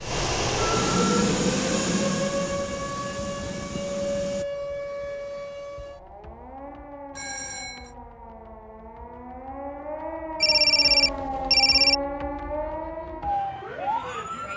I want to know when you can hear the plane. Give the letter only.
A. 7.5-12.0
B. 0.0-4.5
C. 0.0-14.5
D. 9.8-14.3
B.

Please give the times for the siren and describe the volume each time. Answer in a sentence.
You can hear the siren from 0.0 to 14.5 s, getting quieter then louder.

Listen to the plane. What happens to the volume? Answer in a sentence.
The volume of the plane goes down.